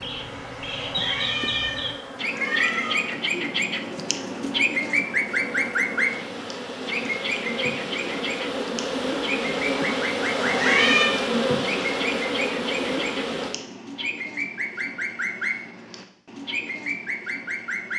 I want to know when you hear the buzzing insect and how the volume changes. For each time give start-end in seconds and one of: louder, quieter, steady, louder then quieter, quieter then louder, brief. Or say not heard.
0.0-13.6 louder.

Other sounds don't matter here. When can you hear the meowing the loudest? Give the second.
11 s.